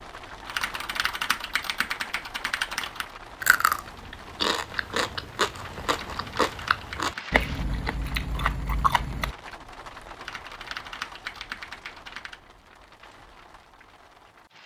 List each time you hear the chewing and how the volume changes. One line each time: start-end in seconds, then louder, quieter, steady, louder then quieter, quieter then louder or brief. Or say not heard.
3.4-9.3 steady.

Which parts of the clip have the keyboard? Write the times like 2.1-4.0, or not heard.
0.5-3.1, 5.9-7.4, 10.2-12.4.